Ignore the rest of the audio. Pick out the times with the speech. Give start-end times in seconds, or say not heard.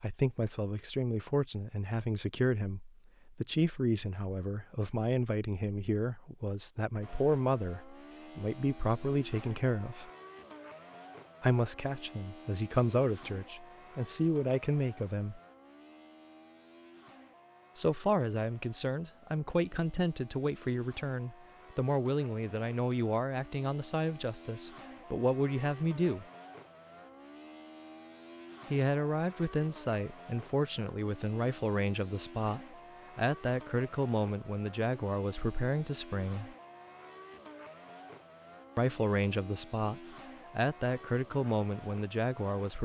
0.0-10.1, 11.4-15.4, 17.8-26.2, 28.7-36.5, 38.8-42.8.